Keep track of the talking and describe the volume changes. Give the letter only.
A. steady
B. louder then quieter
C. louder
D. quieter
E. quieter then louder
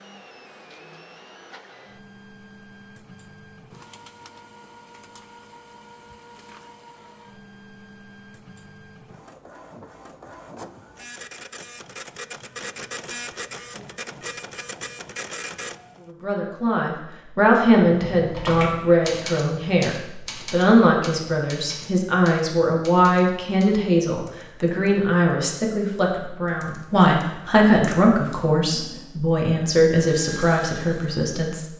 A.